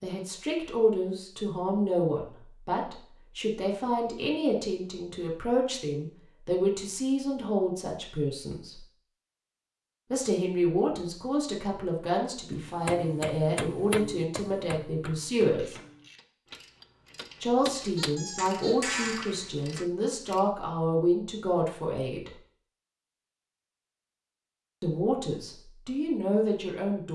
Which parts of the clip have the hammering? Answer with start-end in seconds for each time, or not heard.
12.6-19.9.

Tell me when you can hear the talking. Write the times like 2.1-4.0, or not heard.
0.0-8.8, 10.1-15.8, 17.4-22.3, 24.8-27.1.